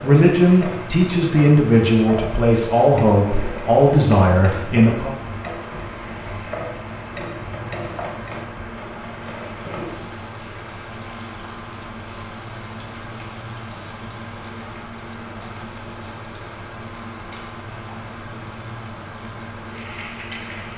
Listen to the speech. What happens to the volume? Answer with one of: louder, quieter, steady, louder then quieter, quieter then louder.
steady.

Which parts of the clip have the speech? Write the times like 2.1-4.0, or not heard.
0.0-5.1.